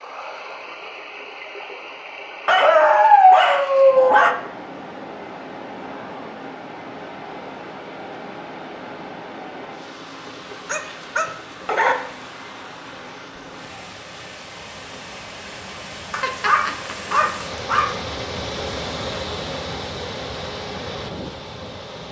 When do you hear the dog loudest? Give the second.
3 s.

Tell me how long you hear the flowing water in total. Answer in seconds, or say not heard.
22 s.